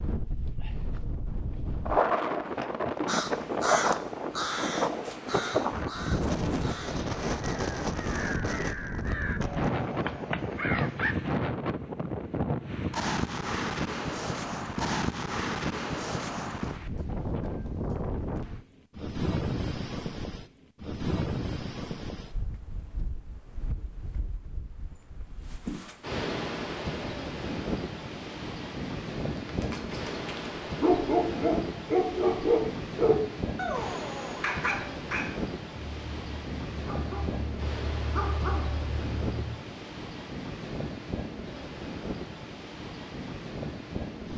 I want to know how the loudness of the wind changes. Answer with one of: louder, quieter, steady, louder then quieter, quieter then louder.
quieter.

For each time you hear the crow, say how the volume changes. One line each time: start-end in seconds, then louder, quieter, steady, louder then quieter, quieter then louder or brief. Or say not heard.
3.0-11.2 quieter then louder.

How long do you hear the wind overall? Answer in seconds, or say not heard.
44 s.